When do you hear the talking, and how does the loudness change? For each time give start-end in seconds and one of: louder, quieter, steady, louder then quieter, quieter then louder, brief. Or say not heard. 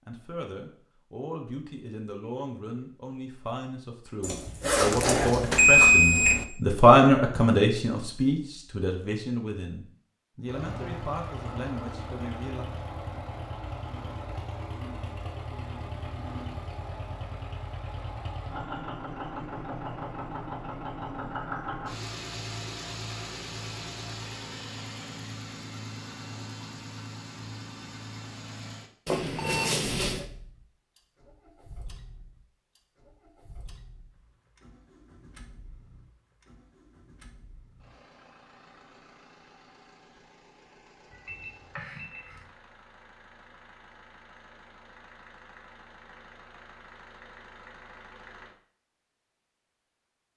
0.1-12.7 louder then quieter.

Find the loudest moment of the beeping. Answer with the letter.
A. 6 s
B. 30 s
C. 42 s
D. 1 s
A.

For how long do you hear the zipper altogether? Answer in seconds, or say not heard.
2 s.